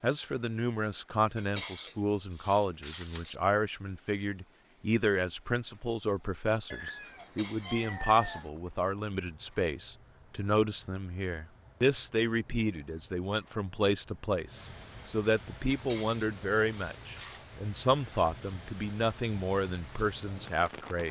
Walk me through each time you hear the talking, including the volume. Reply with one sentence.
The talking can be heard from 0.0 to 21.0 s, at a steady volume.